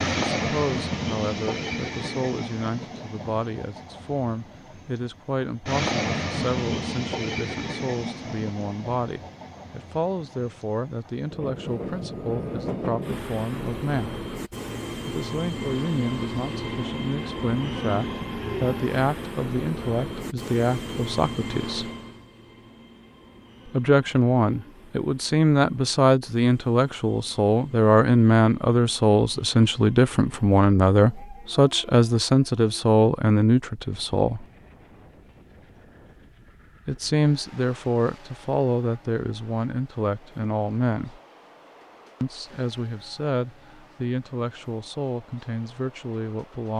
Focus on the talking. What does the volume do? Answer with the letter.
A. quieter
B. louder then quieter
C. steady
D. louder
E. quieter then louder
B.